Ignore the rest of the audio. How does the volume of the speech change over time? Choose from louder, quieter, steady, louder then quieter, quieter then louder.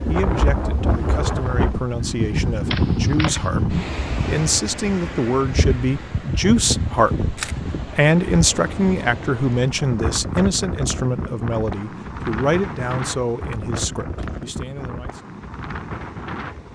louder then quieter.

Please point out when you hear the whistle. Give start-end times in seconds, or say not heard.
not heard.